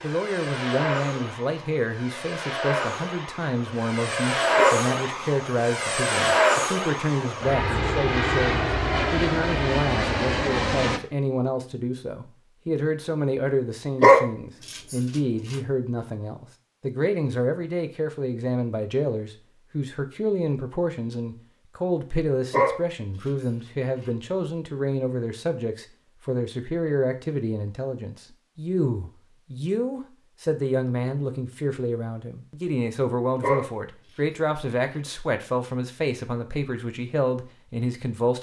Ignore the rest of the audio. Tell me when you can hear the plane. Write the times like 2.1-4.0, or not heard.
0.0-11.0.